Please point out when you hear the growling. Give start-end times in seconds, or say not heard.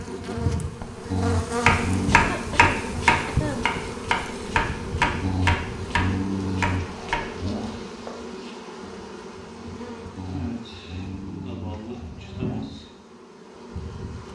1.1-2.2, 5.2-7.8, 10.2-12.7.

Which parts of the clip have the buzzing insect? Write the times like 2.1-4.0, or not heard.
0.0-14.3.